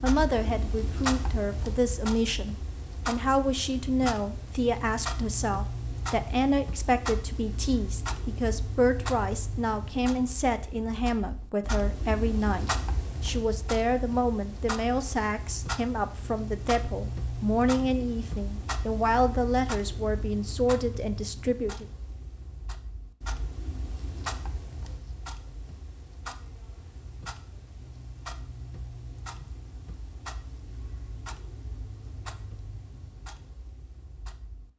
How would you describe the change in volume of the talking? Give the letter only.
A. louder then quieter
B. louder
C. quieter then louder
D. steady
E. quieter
D.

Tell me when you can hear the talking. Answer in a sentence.
The talking can be heard from 0.0 to 21.9 s.